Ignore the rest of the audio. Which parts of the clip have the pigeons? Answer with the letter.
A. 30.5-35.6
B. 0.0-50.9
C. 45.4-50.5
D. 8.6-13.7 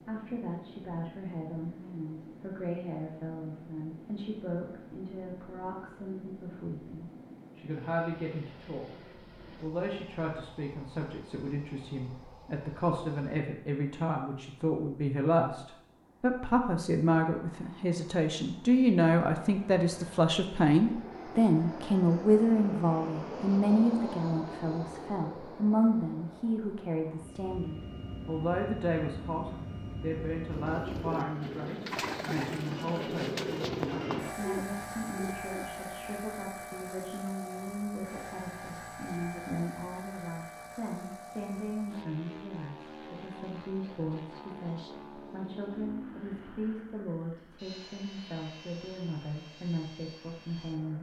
A.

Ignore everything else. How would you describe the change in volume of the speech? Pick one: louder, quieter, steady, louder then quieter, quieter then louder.
louder then quieter.